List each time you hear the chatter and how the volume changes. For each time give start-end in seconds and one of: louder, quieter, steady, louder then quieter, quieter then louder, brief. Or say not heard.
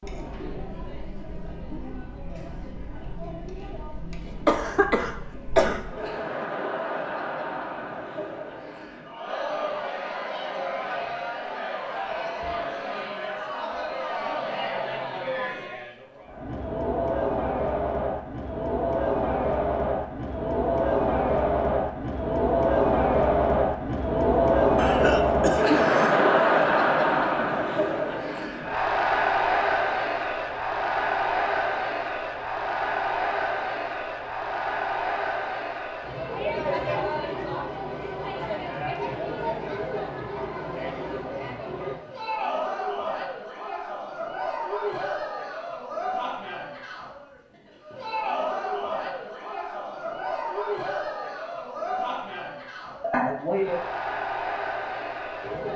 0.0-55.7 louder then quieter.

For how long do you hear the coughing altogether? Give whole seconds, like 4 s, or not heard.
4 s.